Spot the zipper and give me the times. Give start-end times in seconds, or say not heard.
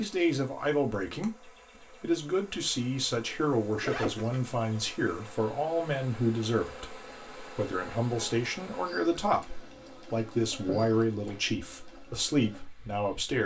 3.8-4.4, 10.7-11.4.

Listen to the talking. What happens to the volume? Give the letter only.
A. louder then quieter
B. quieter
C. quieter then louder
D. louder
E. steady
E.